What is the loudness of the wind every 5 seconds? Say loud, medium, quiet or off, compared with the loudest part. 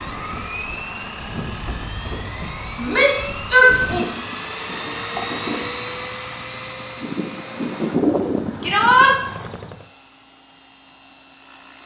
medium, loud, off.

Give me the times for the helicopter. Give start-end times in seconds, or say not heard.
0.0-11.8.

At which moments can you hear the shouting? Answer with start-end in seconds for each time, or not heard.
2.8-4.0, 8.6-9.2.